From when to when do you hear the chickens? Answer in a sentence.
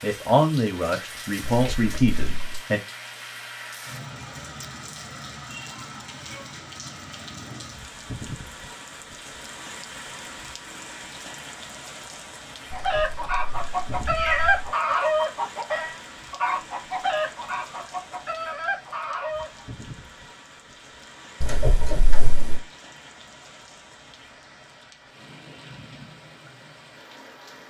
You can hear the chickens from 12.7 to 19.6 s.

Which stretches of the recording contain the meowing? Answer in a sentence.
The meowing can be heard from 1.5 to 2.6 s, from 12.7 to 14.7 s and from 21.4 to 22.6 s.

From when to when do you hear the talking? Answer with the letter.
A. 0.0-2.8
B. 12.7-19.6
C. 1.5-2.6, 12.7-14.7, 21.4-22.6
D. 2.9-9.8
A.